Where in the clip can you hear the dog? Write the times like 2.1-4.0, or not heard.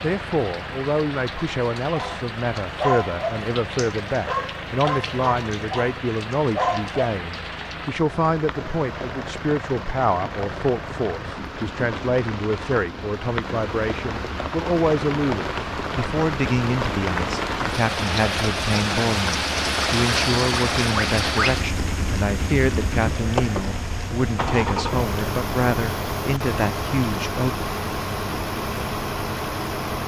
1.9-7.0.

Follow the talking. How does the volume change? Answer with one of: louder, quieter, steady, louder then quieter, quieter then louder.
steady.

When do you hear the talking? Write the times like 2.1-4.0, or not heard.
0.0-27.6.